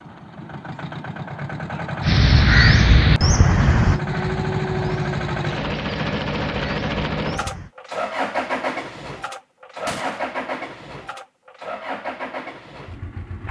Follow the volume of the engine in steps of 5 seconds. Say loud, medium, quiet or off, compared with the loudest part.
loud, loud, medium.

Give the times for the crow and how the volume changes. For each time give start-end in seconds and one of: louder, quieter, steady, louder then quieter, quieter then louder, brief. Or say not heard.
2.0-7.7 quieter.